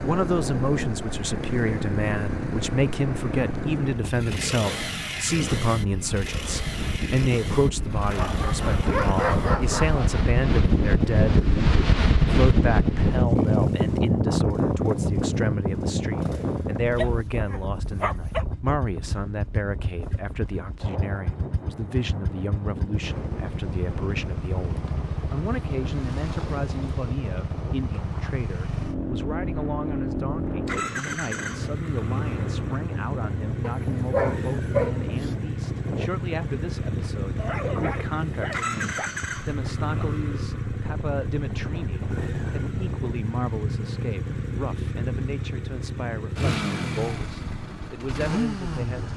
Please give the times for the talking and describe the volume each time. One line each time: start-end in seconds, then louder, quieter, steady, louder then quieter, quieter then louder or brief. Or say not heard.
0.0-49.1 quieter.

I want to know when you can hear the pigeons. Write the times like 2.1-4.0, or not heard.
not heard.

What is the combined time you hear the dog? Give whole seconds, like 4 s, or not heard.
7 s.